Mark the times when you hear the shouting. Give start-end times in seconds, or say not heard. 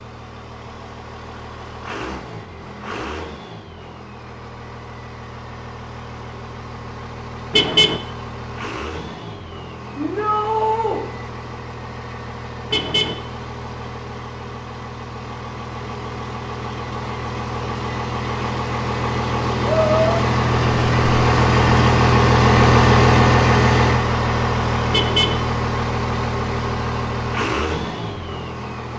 9.9-11.0, 19.6-20.2.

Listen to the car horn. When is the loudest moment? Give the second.
8 s.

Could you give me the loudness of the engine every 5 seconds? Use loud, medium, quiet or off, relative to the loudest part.
quiet, quiet, quiet, medium, loud, medium.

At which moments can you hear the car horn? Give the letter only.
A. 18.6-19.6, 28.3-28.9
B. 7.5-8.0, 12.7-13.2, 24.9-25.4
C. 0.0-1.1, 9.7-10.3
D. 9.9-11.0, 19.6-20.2
B.